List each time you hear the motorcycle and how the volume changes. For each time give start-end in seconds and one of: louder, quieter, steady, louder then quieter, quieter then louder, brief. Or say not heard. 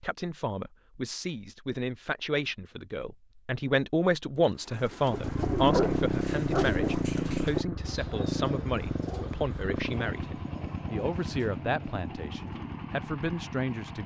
5.0-14.0 quieter.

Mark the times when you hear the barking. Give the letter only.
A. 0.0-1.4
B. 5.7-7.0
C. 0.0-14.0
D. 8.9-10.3
B.